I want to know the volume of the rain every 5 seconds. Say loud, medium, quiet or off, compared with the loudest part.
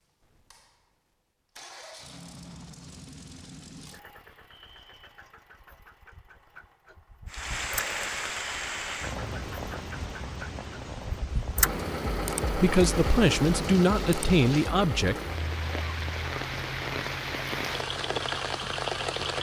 off, loud, medium, loud.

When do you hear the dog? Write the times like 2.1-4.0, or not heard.
not heard.